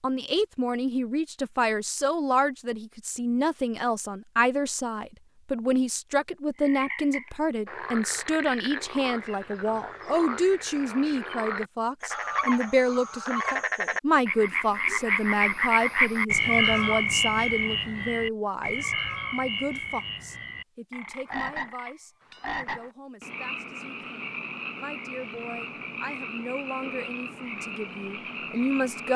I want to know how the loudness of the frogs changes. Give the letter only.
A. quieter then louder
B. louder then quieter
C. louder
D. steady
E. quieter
B.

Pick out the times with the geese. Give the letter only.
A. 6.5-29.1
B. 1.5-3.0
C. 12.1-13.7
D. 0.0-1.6
C.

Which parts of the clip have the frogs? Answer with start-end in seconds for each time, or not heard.
6.5-29.1.